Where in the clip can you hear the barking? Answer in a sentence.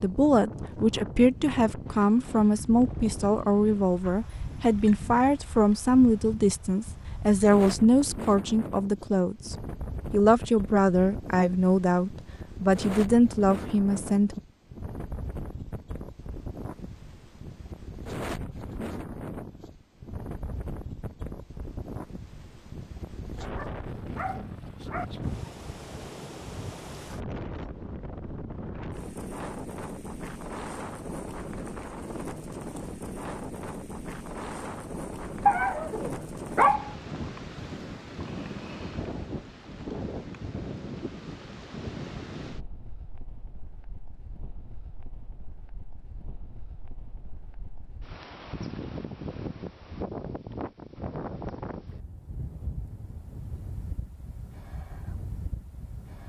You can hear the barking from 23.4 to 25.1 s and from 35.5 to 36.9 s.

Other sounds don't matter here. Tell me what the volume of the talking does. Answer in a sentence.
The loudness of the talking stays about the same.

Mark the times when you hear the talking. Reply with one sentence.
The talking can be heard from 0.0 to 14.4 s.